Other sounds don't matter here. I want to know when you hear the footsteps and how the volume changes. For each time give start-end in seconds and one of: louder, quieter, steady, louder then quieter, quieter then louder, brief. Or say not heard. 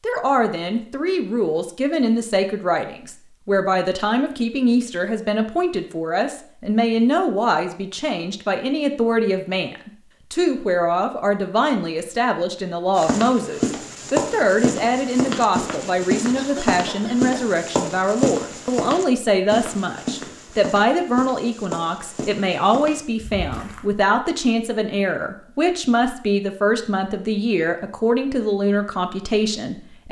12.9-23.9 quieter.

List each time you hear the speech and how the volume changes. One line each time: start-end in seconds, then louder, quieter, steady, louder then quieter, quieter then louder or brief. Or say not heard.
0.0-30.0 steady.